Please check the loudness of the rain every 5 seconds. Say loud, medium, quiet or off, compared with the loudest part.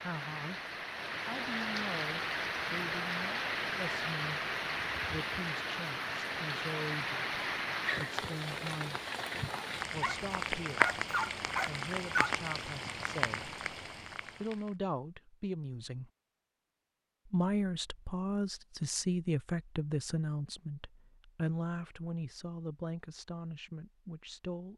loud, loud, loud, off, off.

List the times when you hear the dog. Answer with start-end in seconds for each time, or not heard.
10.0-12.4.